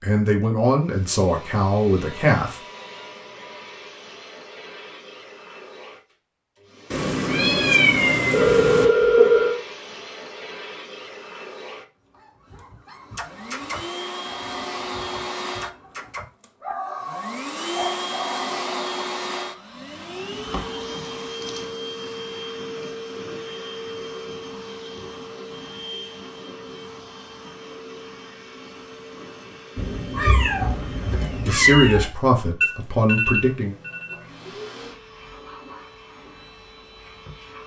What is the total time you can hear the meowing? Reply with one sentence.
The meowing can be heard for 4 seconds in total.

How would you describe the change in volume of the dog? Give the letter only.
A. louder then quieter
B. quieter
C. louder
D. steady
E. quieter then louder
E.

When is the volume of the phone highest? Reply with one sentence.
The volume of the phone peaks at 9 seconds.